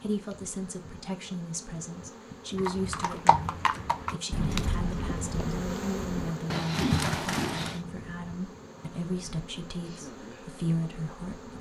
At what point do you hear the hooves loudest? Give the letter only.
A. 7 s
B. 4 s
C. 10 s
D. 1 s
A.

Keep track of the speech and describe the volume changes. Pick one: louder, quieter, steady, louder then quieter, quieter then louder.
steady.